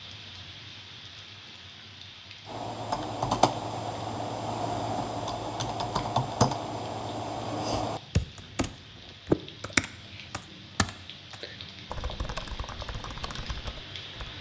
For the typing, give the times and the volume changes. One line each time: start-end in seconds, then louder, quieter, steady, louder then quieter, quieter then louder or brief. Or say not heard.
2.5-14.3 quieter.